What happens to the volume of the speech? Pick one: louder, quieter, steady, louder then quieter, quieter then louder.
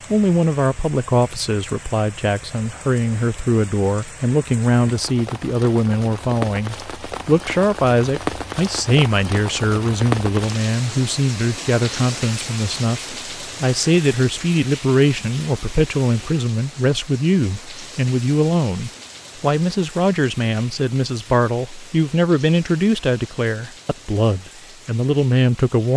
steady.